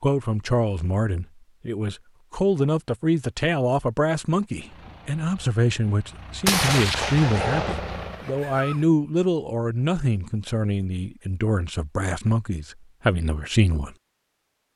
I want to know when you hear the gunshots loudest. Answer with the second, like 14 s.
7 s.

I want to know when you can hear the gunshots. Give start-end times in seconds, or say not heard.
6.5-8.8.